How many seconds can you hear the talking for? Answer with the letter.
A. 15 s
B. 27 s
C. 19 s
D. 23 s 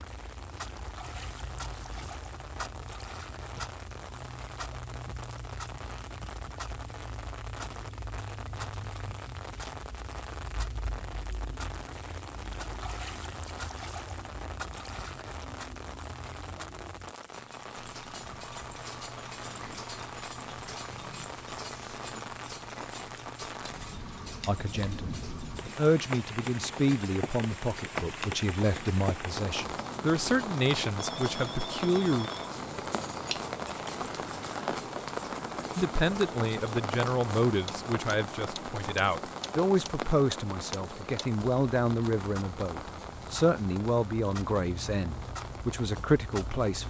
C.